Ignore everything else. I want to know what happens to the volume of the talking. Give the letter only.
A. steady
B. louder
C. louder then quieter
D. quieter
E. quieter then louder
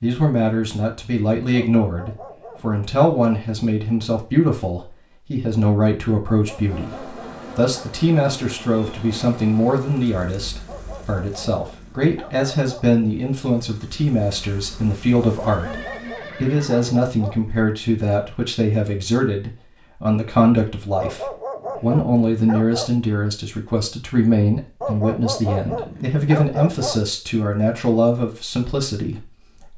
A.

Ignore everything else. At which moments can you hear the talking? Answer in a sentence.
The talking can be heard from 0.0 to 29.7 s.